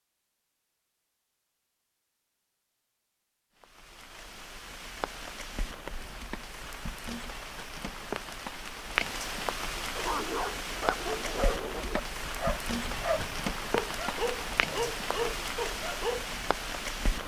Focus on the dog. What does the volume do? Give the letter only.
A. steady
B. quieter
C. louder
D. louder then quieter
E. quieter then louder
A.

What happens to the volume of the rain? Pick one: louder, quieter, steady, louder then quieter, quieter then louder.
louder.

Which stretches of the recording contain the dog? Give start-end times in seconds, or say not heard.
9.9-16.5.